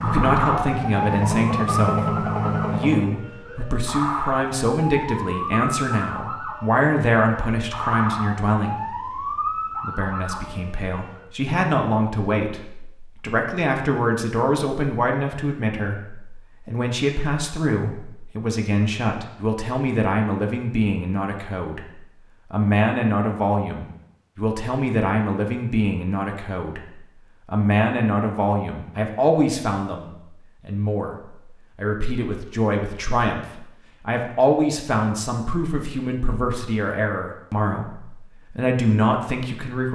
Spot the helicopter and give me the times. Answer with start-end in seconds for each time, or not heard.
0.0-3.0.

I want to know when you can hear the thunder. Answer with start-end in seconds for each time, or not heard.
not heard.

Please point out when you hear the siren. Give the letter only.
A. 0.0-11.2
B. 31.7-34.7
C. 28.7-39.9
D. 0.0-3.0
A.